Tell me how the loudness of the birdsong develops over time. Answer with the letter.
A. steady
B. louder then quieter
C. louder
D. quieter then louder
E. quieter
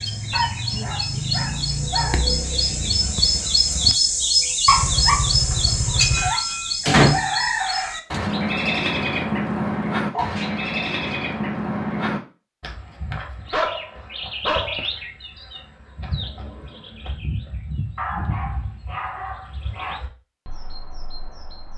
E.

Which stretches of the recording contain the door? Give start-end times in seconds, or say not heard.
6.8-8.2.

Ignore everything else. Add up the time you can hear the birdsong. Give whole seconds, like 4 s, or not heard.
22 s.